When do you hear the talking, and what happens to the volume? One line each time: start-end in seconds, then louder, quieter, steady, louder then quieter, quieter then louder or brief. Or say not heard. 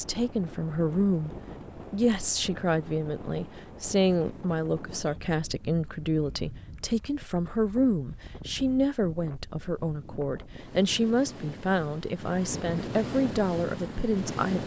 0.0-14.6 steady.